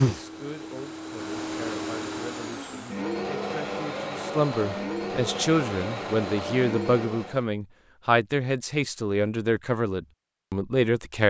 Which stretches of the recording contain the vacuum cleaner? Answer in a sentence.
The vacuum cleaner can be heard from 0.0 to 7.5 s.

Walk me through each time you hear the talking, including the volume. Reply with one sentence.
You can hear the talking from 0.0 to 11.2 s, getting louder.